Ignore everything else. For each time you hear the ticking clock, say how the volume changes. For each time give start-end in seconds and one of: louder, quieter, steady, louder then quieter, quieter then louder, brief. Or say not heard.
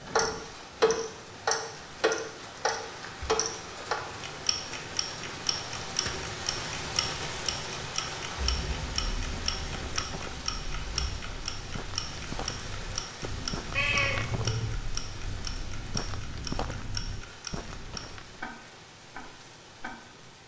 0.0-20.1 quieter.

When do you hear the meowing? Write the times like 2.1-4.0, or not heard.
13.8-14.8.